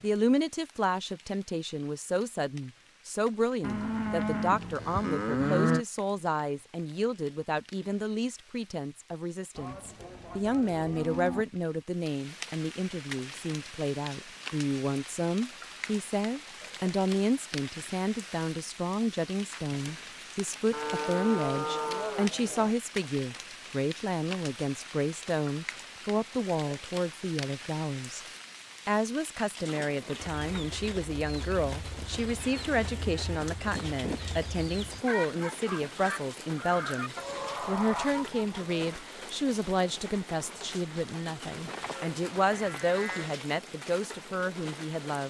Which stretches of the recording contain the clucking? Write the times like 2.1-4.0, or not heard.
30.4-39.0.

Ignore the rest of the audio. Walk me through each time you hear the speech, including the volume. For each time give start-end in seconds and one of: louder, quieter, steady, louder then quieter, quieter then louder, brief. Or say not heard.
0.0-28.2 steady
28.9-45.2 steady.